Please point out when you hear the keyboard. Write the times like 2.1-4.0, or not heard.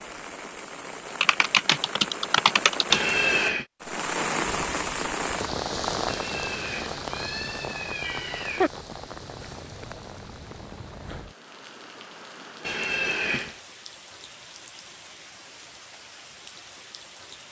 1.2-3.0.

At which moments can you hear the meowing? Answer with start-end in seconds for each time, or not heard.
2.9-3.6, 6.0-8.7, 12.6-13.6.